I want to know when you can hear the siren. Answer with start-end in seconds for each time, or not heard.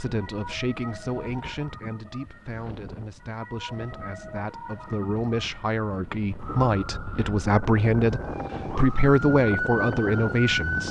0.0-10.8.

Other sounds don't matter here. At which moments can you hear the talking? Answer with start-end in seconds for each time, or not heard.
0.0-10.8.